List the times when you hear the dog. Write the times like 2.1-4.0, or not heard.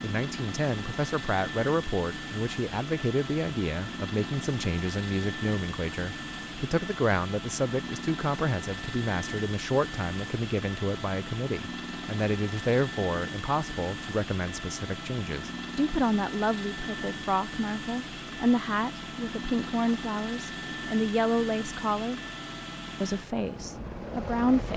not heard.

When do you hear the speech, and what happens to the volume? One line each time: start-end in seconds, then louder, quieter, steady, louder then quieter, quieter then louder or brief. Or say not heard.
0.0-22.2 steady
23.0-24.7 brief.